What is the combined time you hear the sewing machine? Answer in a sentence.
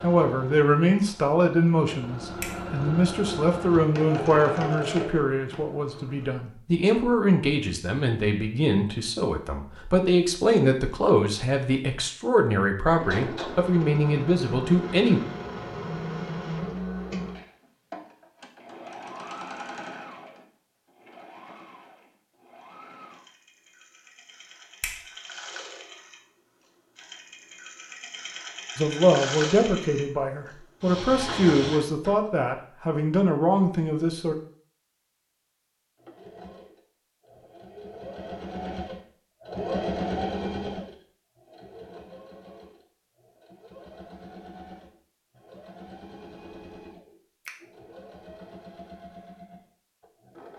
The sewing machine can be heard for 40 seconds in total.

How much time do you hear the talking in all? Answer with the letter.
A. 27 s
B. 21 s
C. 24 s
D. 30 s
B.